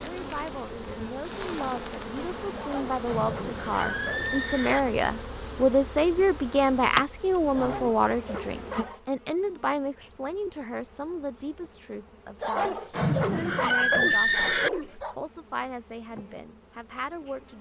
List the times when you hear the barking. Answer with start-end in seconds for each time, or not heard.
2.5-4.2, 7.5-9.0, 12.4-15.2.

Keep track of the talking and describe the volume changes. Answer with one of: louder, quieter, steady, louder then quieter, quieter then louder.
louder then quieter.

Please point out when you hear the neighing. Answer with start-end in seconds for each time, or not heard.
3.0-4.8, 12.9-14.7.